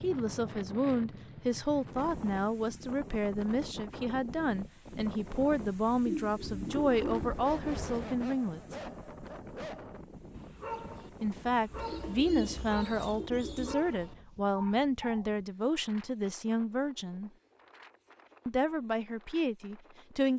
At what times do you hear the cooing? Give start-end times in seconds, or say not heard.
6.0-8.1, 11.7-13.8.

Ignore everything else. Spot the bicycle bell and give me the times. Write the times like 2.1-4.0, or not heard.
not heard.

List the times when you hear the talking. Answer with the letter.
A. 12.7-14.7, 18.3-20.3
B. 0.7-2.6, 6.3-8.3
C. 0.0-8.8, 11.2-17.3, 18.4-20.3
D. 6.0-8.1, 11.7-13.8
C.